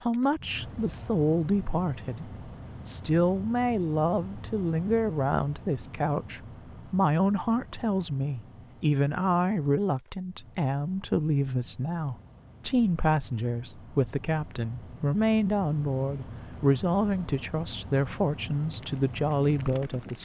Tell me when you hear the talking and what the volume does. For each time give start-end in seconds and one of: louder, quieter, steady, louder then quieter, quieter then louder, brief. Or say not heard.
0.0-20.2 steady.